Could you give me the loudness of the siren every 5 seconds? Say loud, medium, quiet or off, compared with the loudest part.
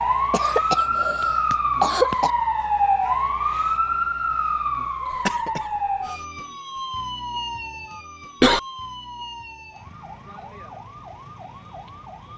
loud, medium, quiet.